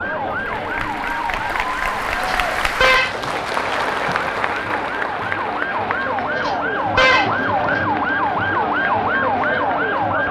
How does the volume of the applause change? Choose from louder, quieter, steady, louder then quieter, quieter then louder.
quieter.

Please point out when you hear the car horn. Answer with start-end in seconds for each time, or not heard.
2.2-3.1, 6.3-7.8.